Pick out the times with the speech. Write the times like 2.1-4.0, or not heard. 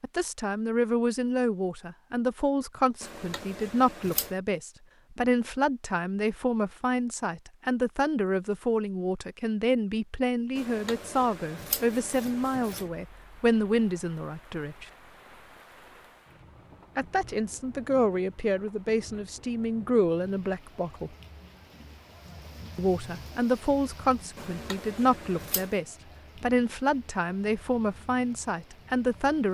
0.0-14.8, 16.9-21.1, 22.8-29.4.